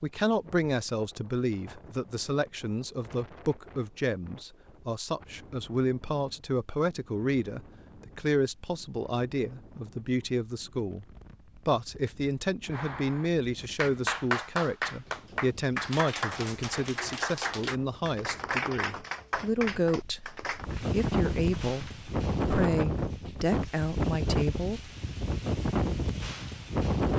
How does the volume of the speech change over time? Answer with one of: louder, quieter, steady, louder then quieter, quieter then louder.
steady.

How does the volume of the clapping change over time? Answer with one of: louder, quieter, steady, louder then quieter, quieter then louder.
quieter.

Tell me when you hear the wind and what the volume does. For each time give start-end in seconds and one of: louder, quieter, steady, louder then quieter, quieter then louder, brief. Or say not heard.
0.2-27.1 louder.